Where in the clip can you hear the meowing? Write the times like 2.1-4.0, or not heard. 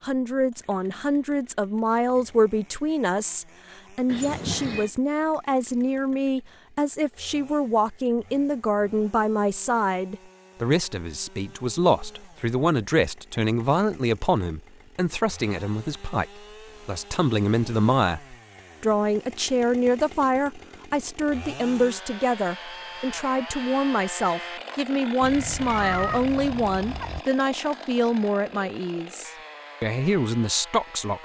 4.0-4.9, 25.2-27.2.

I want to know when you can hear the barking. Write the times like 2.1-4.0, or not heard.
not heard.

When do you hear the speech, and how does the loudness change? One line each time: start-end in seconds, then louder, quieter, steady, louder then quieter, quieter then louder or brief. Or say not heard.
0.0-31.1 steady.